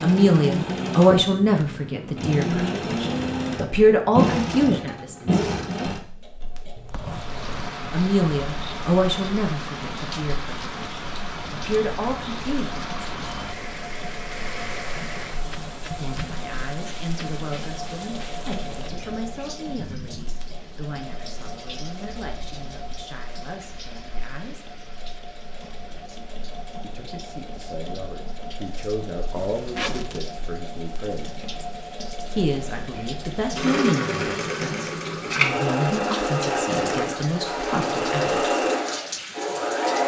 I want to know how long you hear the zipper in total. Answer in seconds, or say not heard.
2 s.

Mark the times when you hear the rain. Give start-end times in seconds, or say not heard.
6.9-40.0.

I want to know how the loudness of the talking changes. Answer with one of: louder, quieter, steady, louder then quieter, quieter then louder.
quieter then louder.